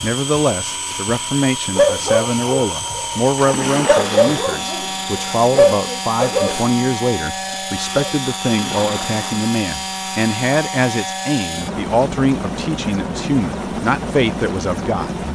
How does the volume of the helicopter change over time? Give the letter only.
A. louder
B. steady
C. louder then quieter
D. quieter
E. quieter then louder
B.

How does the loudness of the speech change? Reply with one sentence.
The loudness of the speech stays about the same.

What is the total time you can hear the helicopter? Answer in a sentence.
The helicopter can be heard for 15 seconds in total.